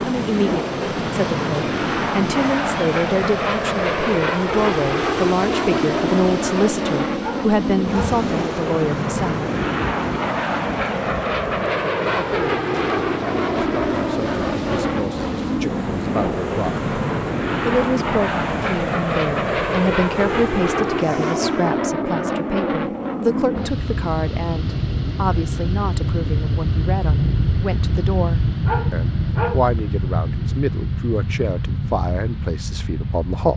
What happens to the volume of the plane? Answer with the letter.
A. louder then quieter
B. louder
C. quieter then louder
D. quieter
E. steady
E.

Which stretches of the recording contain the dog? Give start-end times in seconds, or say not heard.
7.2-8.2, 28.6-29.8.